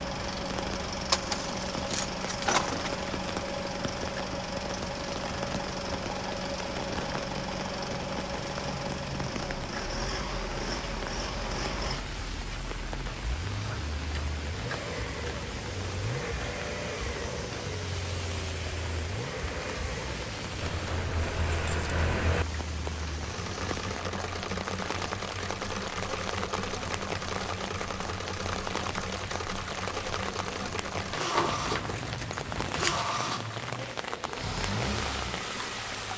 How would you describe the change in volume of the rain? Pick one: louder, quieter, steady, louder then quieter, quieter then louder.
steady.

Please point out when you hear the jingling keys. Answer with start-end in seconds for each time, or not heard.
1.1-3.0, 20.6-22.4, 31.4-33.1.